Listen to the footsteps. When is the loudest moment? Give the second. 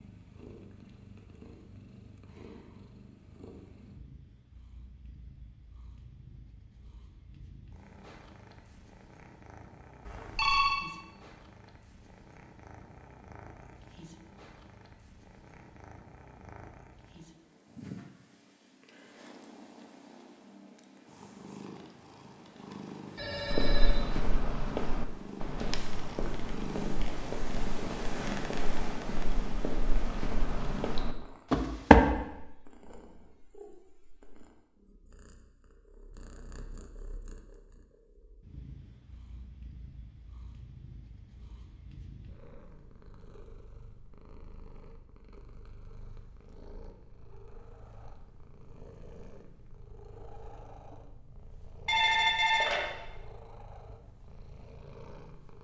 32 s.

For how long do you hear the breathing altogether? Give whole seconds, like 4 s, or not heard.
not heard.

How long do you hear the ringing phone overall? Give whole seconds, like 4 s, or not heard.
3 s.